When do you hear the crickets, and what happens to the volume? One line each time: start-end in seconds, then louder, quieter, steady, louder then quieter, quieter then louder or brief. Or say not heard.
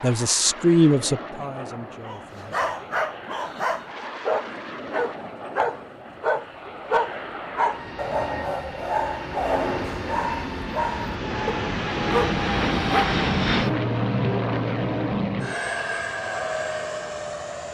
not heard.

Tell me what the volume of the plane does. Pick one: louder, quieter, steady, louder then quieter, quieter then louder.
louder.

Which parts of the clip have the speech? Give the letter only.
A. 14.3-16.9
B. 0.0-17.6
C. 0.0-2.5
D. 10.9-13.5
C.